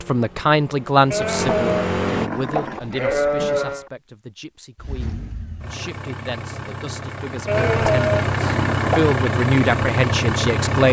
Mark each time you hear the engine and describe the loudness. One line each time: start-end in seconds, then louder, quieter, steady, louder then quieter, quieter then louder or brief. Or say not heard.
0.0-2.3 brief
4.8-10.8 louder.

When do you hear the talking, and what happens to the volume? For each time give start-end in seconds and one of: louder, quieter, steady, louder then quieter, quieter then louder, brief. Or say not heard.
0.0-10.8 quieter then louder.